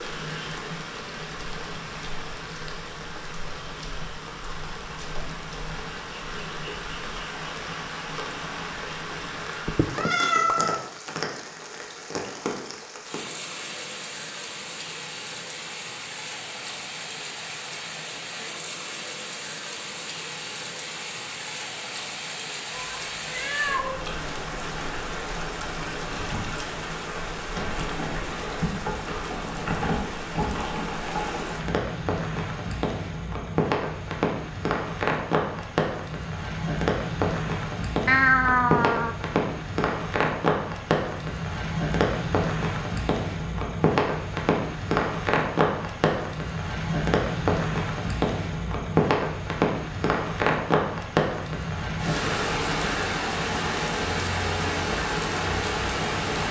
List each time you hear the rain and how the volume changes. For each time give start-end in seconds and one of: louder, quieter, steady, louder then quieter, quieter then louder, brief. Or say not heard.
0.0-56.4 louder.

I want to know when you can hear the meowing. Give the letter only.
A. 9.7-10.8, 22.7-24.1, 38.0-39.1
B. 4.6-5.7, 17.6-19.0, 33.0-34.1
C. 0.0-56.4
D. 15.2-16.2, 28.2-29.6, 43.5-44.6
A.